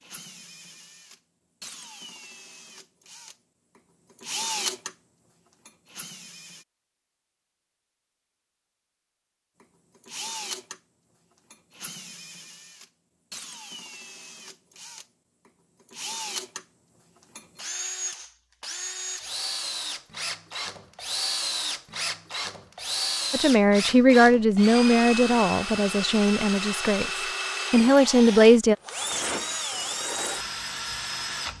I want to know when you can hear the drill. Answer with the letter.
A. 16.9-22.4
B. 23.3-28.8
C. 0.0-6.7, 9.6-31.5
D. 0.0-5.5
C.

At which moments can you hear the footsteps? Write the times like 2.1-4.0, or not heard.
not heard.